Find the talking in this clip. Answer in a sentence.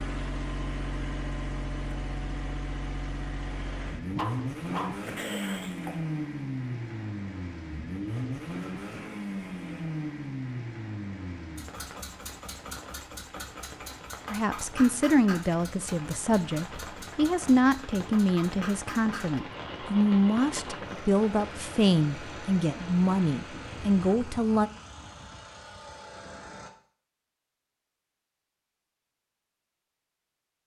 You can hear the talking from 14.3 to 24.7 s.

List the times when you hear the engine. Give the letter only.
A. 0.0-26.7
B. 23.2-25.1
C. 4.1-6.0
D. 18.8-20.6
A.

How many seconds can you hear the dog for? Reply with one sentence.
You can hear the dog for 2 seconds altogether.